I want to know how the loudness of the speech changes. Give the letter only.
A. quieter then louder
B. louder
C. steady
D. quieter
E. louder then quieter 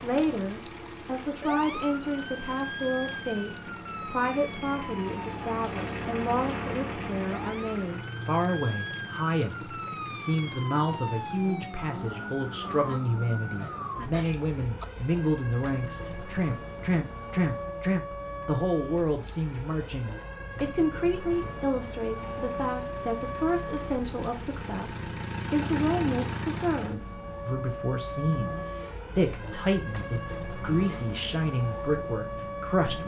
C.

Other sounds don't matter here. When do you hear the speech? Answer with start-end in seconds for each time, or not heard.
0.0-33.0.